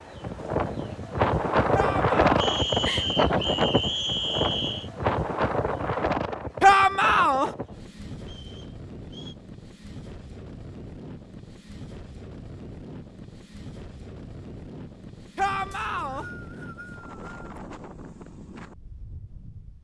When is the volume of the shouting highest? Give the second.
7 s.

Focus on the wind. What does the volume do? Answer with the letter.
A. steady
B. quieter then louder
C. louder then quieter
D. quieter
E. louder
D.